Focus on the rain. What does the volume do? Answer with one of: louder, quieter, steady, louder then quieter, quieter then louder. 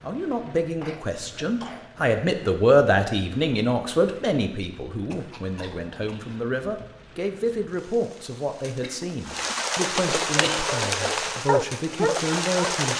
louder.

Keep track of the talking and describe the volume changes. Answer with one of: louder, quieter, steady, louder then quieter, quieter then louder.
quieter.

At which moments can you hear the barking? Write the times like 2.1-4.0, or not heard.
10.4-12.8.